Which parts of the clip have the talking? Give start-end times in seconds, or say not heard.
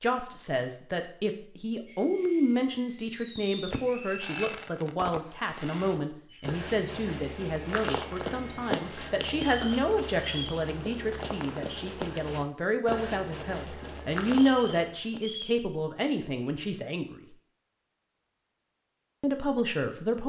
0.0-17.2, 19.2-20.2.